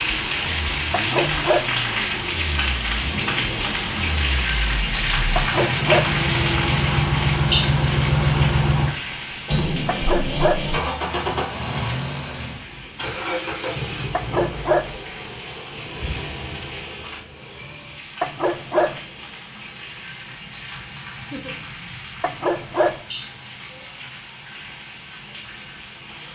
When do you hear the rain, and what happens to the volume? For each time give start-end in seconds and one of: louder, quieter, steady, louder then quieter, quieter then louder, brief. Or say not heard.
0.0-26.2 quieter.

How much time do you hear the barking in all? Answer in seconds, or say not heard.
5 s.